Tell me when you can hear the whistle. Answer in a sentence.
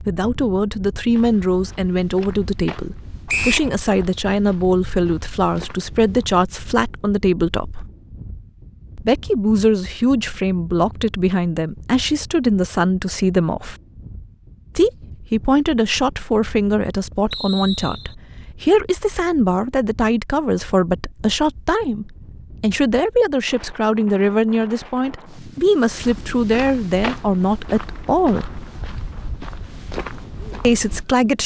The whistle can be heard from 3.2 to 3.7 s and from 17.3 to 18.1 s.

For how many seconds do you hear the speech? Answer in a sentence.
The speech can be heard for 27 seconds in total.